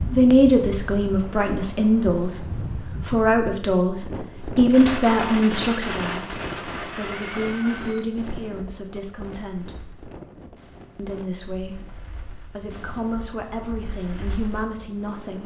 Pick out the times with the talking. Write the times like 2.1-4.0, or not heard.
0.0-9.9, 10.9-15.4.